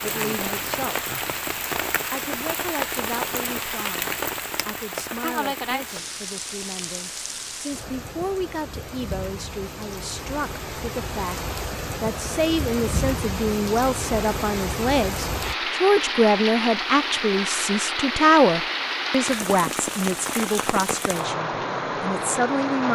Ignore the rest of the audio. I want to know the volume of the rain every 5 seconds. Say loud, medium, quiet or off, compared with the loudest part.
loud, medium, loud, loud, loud.